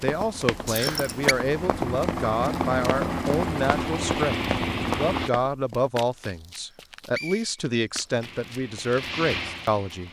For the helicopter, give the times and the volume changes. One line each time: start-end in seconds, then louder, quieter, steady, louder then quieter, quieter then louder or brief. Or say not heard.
0.1-5.3 louder
8.2-10.0 brief.